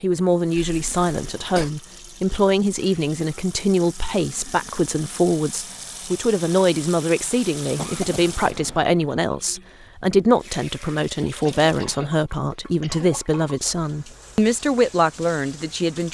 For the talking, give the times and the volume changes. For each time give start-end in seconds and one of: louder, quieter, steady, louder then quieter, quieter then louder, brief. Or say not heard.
0.0-16.0 steady.